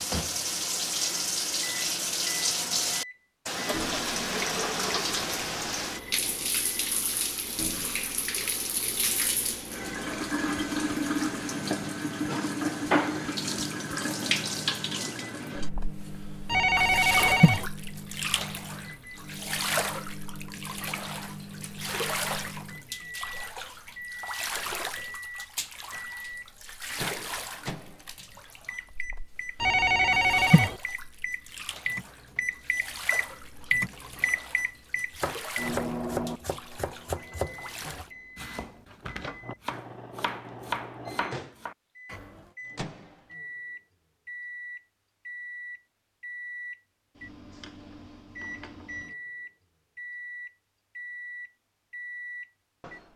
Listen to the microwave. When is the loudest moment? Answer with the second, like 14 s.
34 s.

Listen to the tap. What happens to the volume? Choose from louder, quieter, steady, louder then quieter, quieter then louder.
quieter.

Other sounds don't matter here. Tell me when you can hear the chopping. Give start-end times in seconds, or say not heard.
35.1-42.5.